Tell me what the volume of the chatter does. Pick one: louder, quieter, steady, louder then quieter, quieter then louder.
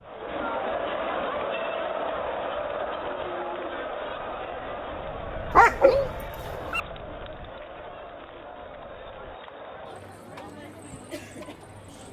quieter.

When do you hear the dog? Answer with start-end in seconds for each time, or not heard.
5.5-6.8.